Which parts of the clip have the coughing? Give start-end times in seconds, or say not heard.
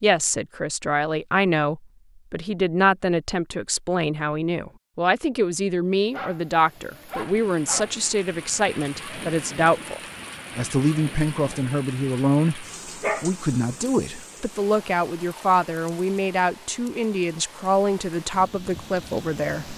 not heard.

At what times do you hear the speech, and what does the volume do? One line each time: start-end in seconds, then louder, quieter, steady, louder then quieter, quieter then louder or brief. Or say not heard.
0.0-19.7 steady.